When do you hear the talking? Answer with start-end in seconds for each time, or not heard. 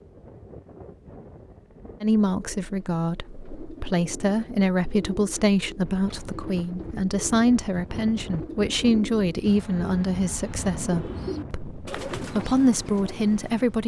2.0-13.8.